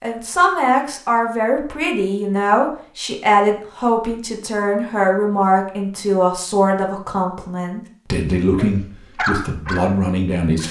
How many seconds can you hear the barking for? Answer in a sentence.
The barking can be heard for 2 seconds in total.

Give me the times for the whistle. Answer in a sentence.
The whistle can't be heard in this clip.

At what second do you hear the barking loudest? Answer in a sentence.
The loudest moment of the barking is at 9 seconds.